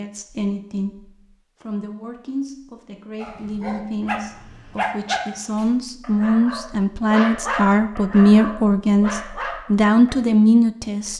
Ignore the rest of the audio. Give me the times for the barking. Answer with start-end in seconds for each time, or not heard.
3.1-10.2.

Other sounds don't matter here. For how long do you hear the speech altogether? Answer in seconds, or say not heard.
11 s.